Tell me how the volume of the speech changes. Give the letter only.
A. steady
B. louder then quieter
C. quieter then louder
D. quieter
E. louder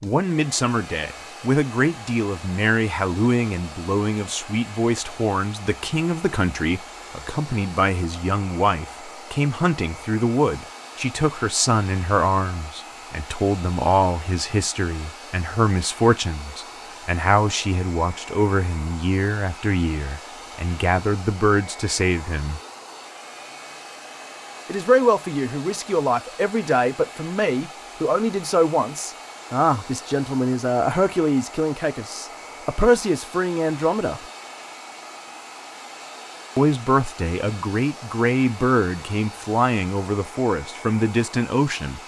A.